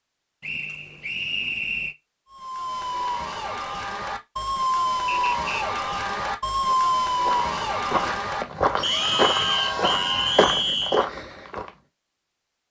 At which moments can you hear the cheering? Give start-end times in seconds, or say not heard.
2.3-10.6.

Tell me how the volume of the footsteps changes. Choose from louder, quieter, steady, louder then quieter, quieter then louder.
louder.